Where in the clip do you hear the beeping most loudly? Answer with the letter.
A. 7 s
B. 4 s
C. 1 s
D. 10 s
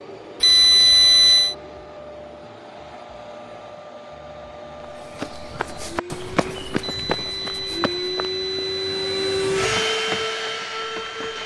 C.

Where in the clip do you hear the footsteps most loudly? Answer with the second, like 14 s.
7 s.